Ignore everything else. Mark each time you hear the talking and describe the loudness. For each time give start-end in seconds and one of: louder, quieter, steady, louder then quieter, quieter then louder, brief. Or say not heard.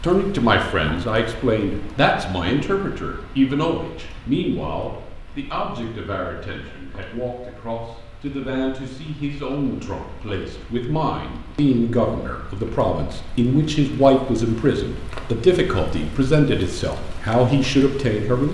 0.0-18.5 quieter then louder.